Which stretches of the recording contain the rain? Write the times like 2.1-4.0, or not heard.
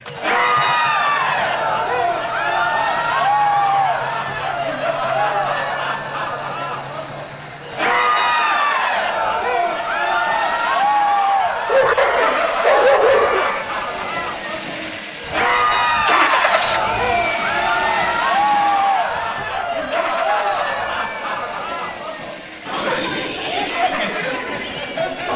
not heard.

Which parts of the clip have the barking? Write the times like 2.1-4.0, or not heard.
11.7-13.7.